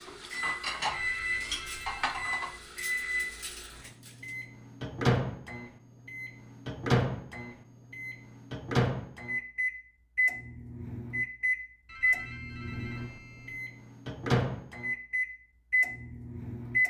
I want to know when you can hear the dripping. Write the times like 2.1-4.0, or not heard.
not heard.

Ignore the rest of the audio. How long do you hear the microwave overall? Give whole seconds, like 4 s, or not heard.
17 s.